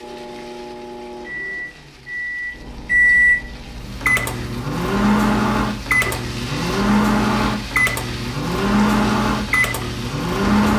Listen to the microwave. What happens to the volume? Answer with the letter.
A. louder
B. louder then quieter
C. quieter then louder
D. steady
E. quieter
A.